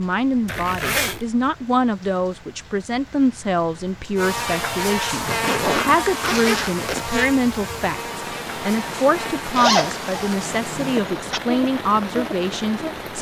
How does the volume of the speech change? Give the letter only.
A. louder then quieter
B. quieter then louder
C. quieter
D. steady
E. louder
D.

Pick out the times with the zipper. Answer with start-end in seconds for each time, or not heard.
0.5-1.2, 5.2-7.0, 9.5-11.4.